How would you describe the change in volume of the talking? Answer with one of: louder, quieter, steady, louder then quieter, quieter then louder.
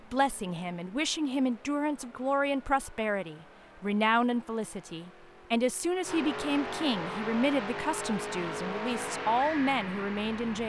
steady.